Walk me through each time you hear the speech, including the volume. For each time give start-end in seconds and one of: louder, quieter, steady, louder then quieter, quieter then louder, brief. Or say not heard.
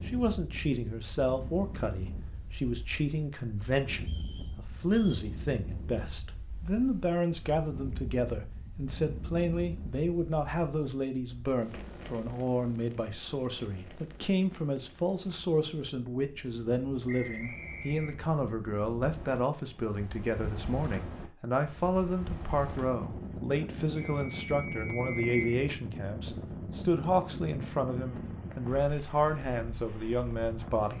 0.1-30.9 steady.